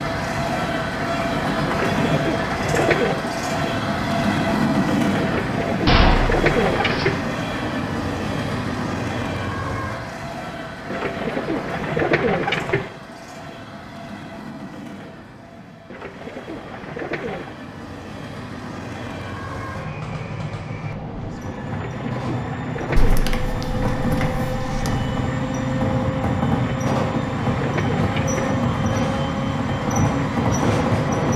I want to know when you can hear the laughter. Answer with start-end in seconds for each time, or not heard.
not heard.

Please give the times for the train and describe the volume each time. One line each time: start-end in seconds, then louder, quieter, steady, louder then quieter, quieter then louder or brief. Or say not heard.
0.0-31.3 quieter then louder.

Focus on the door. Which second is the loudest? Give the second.
6 s.